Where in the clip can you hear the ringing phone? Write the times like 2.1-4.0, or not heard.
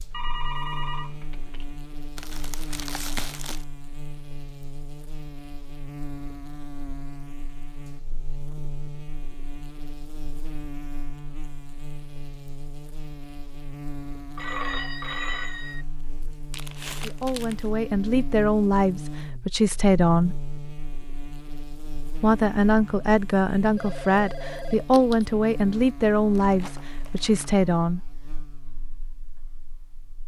0.1-1.8, 14.3-15.8, 23.8-25.2.